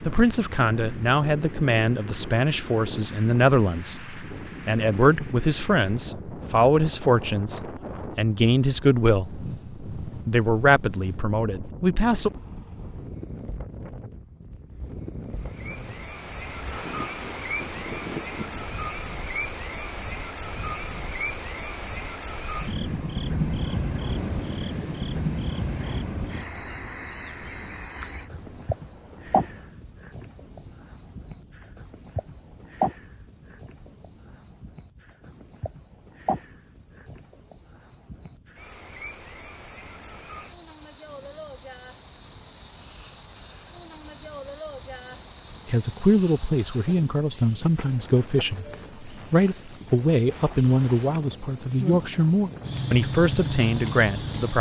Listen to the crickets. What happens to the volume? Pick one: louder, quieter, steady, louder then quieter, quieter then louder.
quieter then louder.